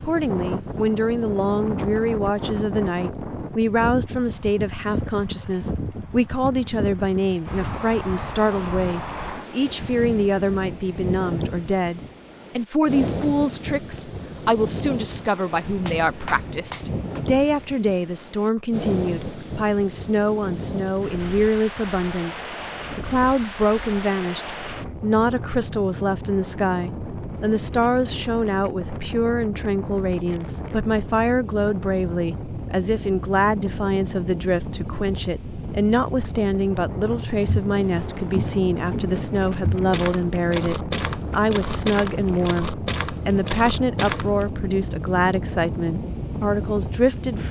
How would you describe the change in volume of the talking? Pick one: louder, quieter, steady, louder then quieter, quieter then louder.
steady.